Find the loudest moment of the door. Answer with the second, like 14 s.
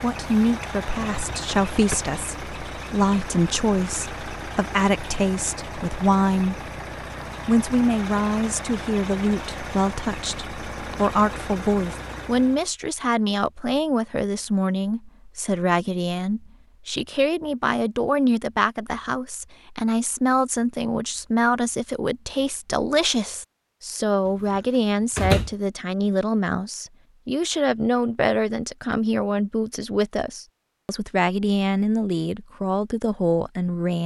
25 s.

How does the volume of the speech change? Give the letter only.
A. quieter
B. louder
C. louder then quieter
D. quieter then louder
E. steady
E.